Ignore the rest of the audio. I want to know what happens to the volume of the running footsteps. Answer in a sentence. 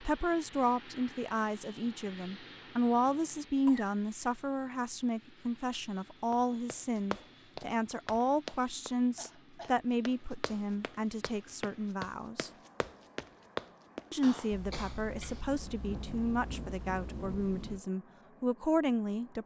The volume of the running footsteps goes down, then up.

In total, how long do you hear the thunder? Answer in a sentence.
You can hear the thunder for 3 seconds altogether.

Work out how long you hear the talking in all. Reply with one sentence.
You can hear the talking for 18 seconds altogether.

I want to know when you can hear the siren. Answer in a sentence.
You can't hear the siren here.